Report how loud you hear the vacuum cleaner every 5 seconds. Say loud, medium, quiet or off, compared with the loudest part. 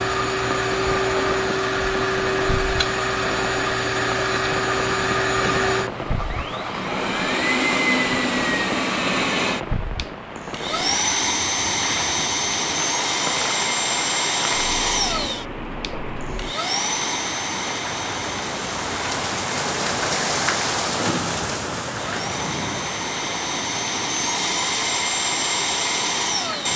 loud, loud, loud, medium, loud, loud.